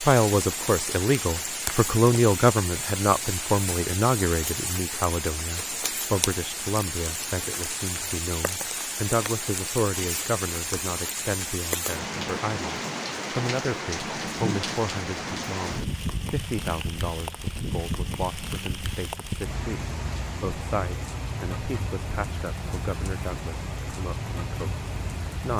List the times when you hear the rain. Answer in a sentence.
The rain can be heard from 0.0 to 25.5 s.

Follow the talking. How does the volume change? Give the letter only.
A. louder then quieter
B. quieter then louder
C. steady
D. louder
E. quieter
E.